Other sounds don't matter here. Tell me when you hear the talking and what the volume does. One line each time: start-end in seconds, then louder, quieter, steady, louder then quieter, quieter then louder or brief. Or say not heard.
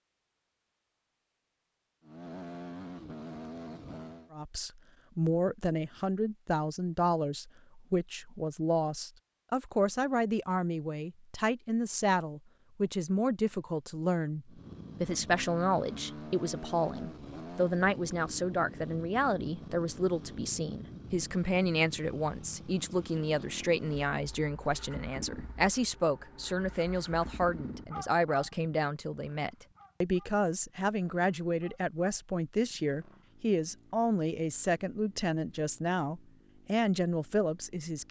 4.3-38.0 steady.